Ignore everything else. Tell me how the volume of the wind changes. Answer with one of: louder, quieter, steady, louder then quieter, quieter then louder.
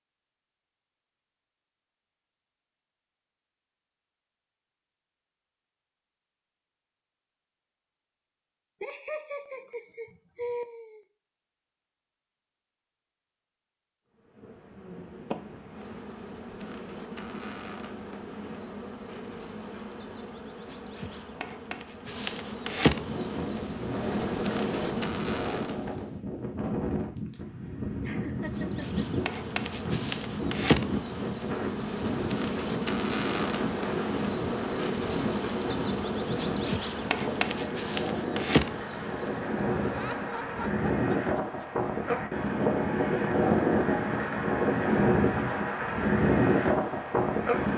louder.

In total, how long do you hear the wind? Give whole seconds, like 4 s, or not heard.
25 s.